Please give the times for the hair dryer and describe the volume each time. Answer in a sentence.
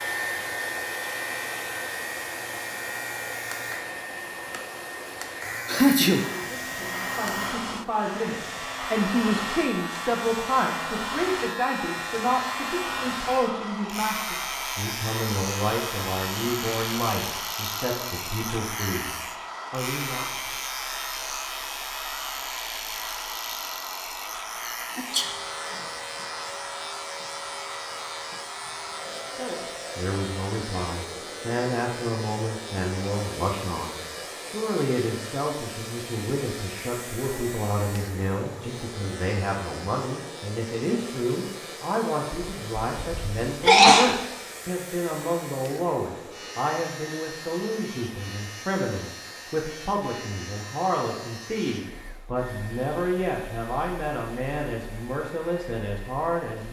You can hear the hair dryer from 0.0 to 56.6 s, getting quieter.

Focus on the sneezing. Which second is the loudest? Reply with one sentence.
The loudest moment of the sneezing is at 44 seconds.